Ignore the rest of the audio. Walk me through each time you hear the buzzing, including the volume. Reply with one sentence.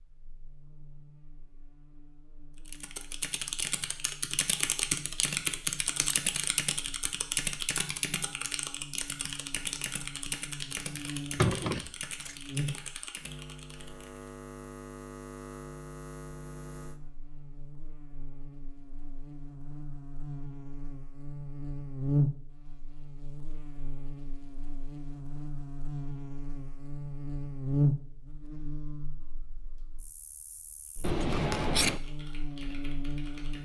The buzzing can be heard from 0.0 to 33.5 s, getting louder.